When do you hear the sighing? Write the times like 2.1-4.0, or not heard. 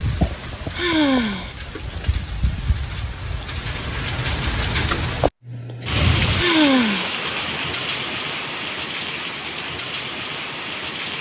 0.7-1.6, 6.3-7.2.